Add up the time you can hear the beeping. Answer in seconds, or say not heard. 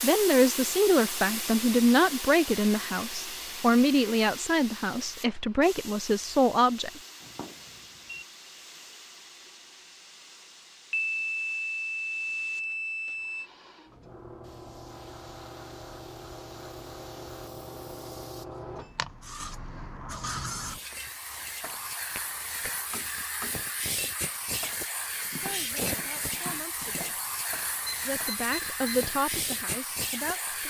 5 s.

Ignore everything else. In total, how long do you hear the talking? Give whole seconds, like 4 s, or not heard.
11 s.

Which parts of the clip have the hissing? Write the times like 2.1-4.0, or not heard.
0.0-30.6.